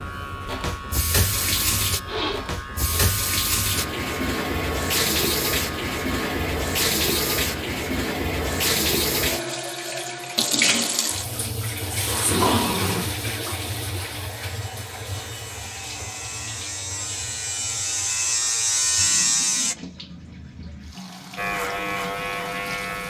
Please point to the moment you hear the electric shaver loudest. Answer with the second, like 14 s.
19 s.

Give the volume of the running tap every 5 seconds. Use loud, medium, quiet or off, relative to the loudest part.
loud, loud, loud, quiet, quiet.